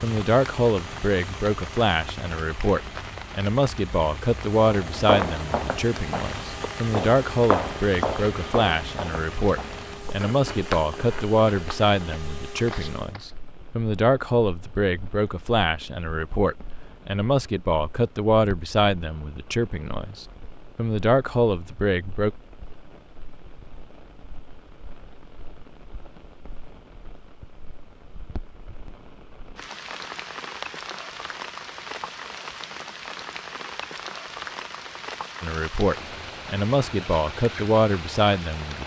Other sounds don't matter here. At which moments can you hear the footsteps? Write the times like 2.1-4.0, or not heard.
4.7-13.3.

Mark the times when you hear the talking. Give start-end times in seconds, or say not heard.
0.0-22.3, 35.4-38.8.